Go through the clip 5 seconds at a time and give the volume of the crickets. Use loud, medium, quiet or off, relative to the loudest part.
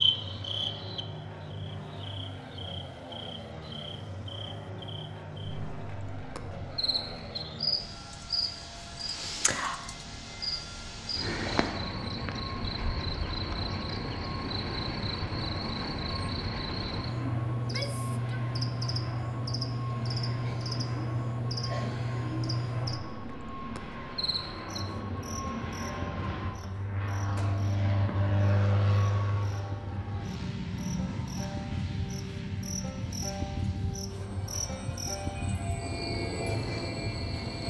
loud, loud, loud, loud, loud, medium, medium, loud.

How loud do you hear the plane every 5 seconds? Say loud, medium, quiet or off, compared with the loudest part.
medium, medium, medium, medium, medium, loud, medium, medium.